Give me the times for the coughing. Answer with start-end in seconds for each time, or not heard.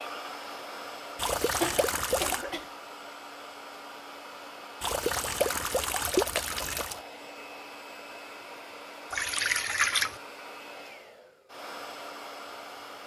1.6-2.7.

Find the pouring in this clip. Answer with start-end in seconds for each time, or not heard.
1.1-2.5, 4.8-7.0, 9.1-10.2.